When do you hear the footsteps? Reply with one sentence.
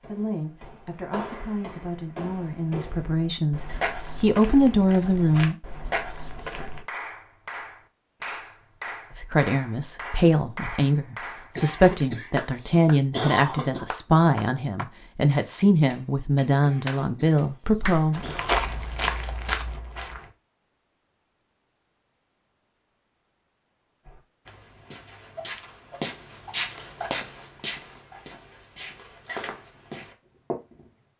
The footsteps can be heard from 0.0 to 6.8 s, from 18.1 to 20.3 s and from 24.1 to 30.9 s.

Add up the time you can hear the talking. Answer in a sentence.
You can hear the talking for 15 seconds altogether.